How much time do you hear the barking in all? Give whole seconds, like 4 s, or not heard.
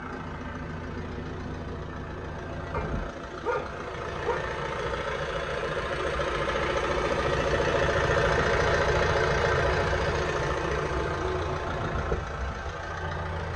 2 s.